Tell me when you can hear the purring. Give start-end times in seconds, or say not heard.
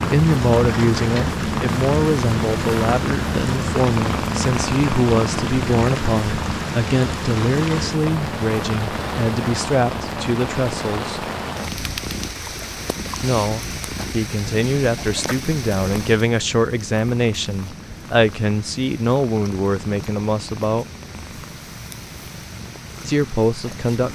0.0-24.1.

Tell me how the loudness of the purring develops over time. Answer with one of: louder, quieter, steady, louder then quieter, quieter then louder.
quieter.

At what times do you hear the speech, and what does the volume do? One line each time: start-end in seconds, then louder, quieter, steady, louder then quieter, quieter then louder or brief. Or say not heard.
0.0-11.2 steady
13.2-20.9 steady
23.1-24.1 brief.